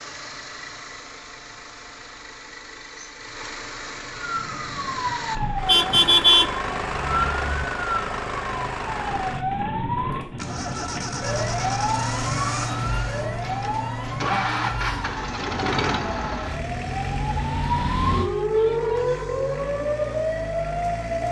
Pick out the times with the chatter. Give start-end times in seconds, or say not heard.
not heard.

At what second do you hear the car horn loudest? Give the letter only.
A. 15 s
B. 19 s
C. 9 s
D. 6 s
D.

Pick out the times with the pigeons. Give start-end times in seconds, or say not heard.
not heard.